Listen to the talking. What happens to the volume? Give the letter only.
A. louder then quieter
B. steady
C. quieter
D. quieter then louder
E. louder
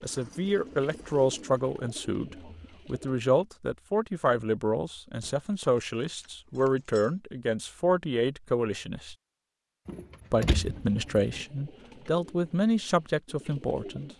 B.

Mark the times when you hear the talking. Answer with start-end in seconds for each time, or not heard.
0.0-9.2, 10.3-14.1.